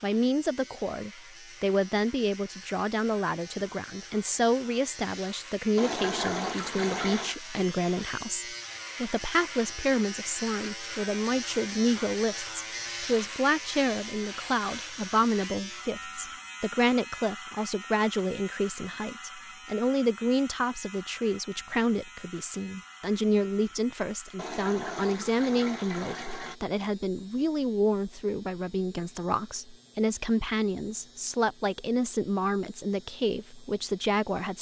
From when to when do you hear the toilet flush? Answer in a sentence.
You can hear the toilet flush from 5.8 to 7.3 s and from 24.4 to 26.6 s.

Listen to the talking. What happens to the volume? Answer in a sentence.
The volume of the talking stays about the same.